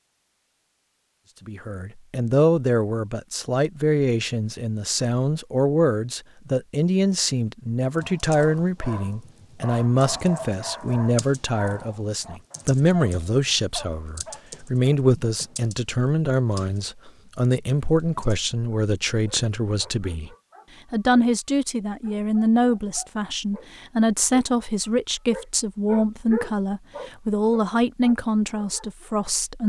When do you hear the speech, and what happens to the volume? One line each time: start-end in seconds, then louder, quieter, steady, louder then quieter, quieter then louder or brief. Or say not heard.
1.4-20.3 steady
20.9-29.6 steady.